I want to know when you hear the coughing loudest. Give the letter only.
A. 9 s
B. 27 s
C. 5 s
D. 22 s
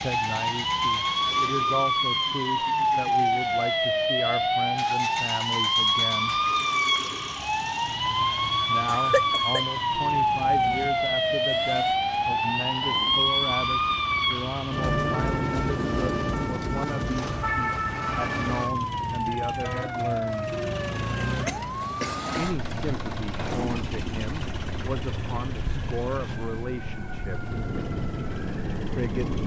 A.